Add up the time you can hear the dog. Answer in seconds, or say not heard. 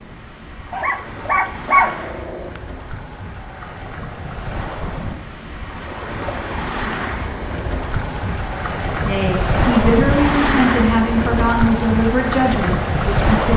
2 s.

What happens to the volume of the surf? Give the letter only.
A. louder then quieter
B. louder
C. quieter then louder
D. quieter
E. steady
B.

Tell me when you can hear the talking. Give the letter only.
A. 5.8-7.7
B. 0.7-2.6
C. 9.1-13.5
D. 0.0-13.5
C.